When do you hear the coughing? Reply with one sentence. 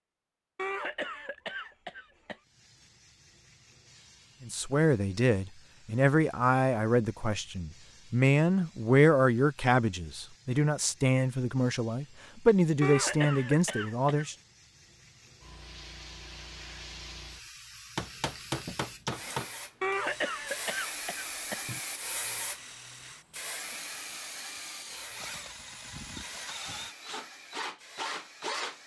The coughing can be heard from 0.6 to 2.4 s, from 12.8 to 14.3 s and from 19.8 to 21.8 s.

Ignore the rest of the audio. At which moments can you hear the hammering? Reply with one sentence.
The hammering can be heard from 17.9 to 19.5 s.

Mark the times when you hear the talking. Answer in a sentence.
The talking can be heard from 4.4 to 14.3 s.